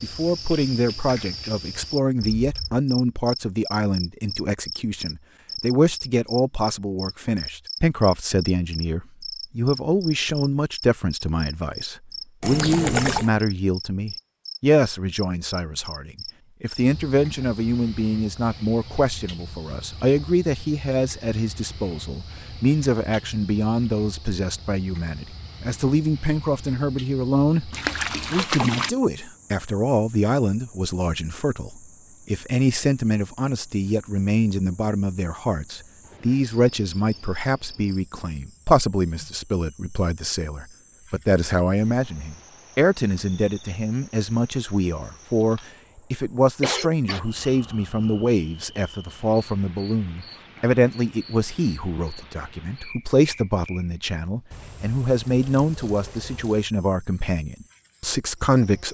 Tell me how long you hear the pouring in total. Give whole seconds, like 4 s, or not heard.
4 s.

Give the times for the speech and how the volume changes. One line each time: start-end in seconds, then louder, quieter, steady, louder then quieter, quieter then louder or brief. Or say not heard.
0.0-58.8 steady.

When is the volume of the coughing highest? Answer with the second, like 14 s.
47 s.